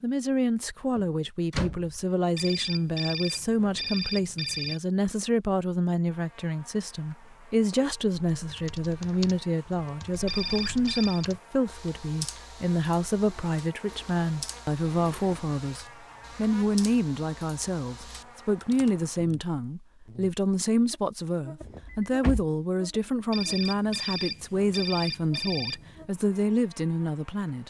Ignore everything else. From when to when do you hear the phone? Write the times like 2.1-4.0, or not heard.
2.4-4.8, 10.2-11.2, 23.3-26.1.